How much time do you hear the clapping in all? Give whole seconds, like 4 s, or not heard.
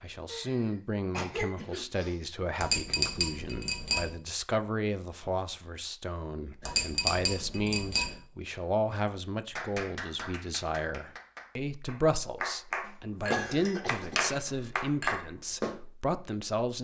6 s.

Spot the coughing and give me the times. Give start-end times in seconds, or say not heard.
0.2-2.1, 12.8-14.3.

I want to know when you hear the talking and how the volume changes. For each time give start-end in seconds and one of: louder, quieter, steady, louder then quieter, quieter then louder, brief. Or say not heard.
0.0-16.8 steady.